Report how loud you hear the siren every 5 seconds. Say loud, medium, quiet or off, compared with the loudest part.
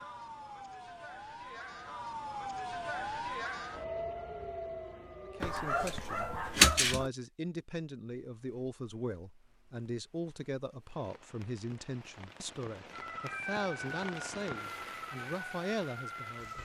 loud, medium, loud, loud.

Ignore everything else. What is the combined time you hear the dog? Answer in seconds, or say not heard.
2 s.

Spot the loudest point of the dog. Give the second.
7 s.